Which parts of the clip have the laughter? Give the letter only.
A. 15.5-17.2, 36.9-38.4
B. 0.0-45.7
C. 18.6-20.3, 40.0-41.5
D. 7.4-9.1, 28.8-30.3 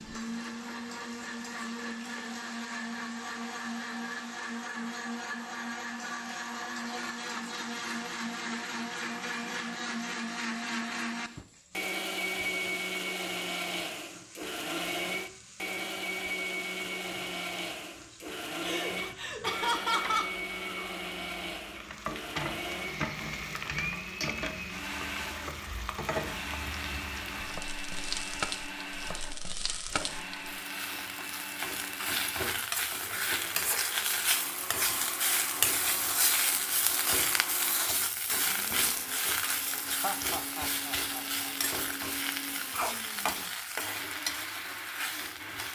C.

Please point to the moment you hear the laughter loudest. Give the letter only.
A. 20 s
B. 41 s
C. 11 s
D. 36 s
A.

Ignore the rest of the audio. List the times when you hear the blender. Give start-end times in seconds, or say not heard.
0.0-45.7.